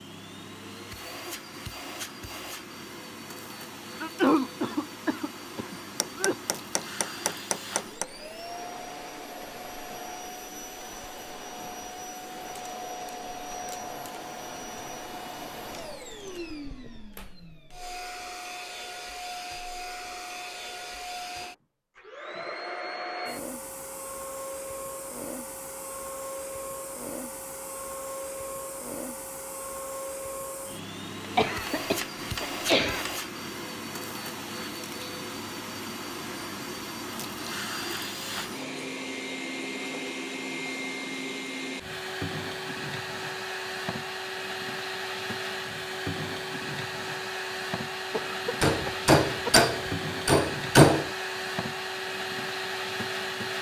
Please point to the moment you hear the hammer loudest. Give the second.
51 s.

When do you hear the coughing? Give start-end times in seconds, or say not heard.
4.0-6.3, 31.4-33.0, 48.1-49.7.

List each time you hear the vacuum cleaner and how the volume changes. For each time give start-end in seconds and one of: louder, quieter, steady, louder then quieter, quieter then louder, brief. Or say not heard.
0.0-53.5 louder.